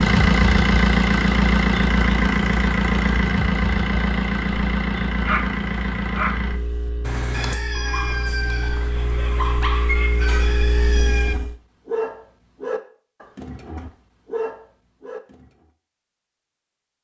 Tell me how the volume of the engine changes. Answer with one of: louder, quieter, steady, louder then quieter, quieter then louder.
quieter then louder.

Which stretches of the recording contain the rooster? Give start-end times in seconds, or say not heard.
7.3-11.3.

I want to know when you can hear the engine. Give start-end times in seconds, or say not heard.
0.0-11.6.